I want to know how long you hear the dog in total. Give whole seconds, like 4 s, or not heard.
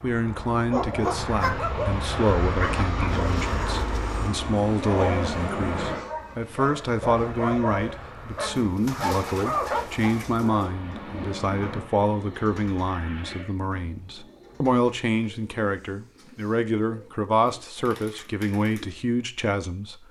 9 s.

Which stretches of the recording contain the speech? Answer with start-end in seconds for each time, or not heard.
0.0-20.0.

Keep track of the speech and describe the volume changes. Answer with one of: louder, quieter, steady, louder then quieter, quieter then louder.
steady.